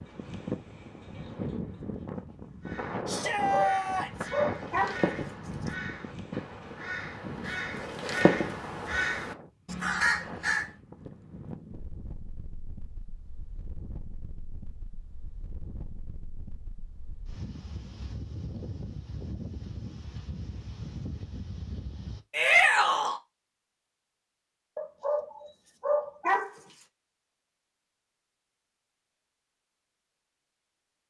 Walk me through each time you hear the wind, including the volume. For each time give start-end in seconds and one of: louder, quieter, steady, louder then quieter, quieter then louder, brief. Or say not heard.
0.0-22.2 quieter then louder.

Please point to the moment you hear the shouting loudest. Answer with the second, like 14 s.
23 s.